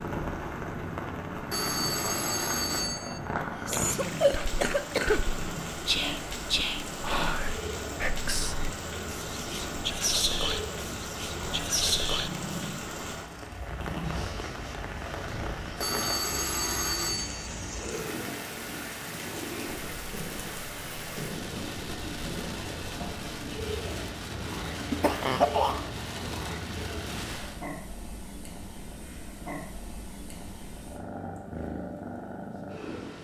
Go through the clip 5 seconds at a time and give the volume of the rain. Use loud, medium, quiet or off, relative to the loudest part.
loud, loud, loud, loud, loud, loud, off.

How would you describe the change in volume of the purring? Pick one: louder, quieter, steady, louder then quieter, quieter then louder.
steady.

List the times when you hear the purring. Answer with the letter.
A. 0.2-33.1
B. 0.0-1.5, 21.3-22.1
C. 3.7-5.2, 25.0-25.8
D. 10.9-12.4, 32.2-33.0
A.